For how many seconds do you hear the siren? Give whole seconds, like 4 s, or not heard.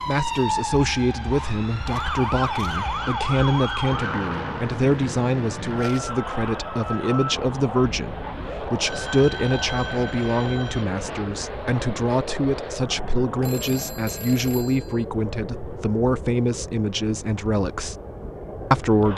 7 s.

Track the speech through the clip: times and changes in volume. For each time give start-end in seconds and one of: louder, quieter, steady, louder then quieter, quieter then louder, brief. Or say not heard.
0.1-17.9 steady
18.7-19.1 brief.